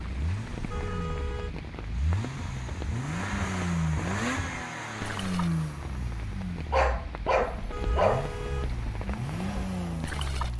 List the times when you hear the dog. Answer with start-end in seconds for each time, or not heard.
6.7-8.3.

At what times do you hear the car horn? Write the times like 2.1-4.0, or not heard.
0.5-1.6, 7.5-9.1.